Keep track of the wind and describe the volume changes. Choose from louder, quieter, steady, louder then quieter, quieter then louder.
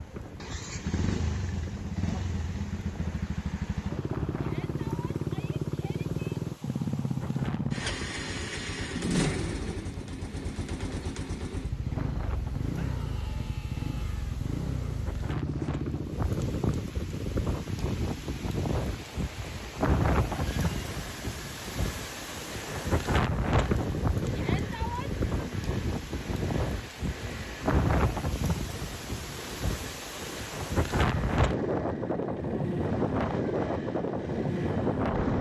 louder.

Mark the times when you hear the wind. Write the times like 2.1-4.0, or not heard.
0.0-35.3.